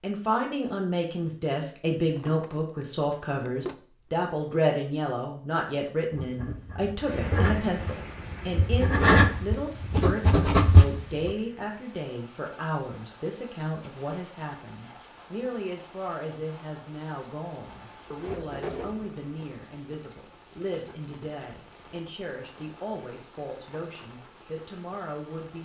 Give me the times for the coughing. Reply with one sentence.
You can't hear the coughing here.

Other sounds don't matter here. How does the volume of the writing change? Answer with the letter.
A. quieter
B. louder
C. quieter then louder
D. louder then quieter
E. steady
B.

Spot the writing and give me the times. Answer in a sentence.
You can hear the writing from 6.1 to 11.3 s.